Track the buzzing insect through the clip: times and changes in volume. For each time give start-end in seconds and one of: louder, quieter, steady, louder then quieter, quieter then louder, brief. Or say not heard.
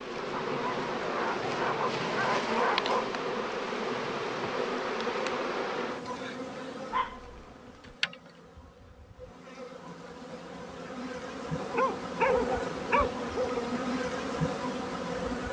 0.0-15.4 quieter then louder.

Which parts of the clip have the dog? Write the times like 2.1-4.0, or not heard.
0.5-3.1, 6.9-8.0, 11.6-13.6.